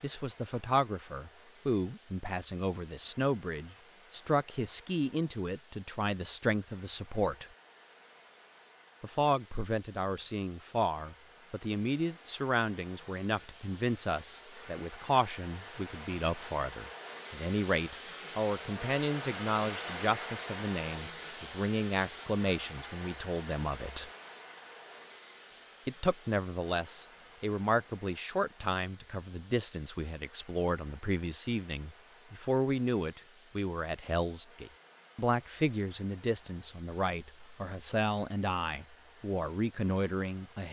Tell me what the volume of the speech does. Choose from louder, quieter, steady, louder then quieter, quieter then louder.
steady.